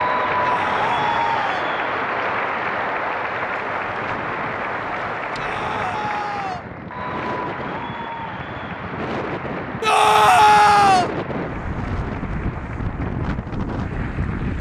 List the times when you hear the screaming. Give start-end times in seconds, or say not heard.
0.4-1.7, 5.3-6.7, 9.8-11.1.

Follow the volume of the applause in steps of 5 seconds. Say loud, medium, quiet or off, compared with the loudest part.
loud, medium, quiet.